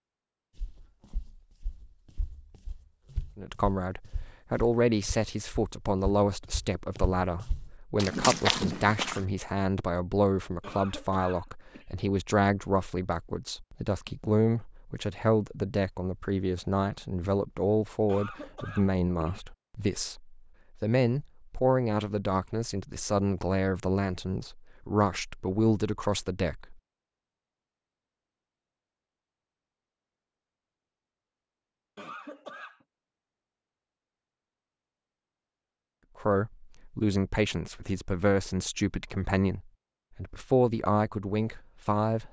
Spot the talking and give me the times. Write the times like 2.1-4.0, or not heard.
3.4-26.8, 36.2-42.2.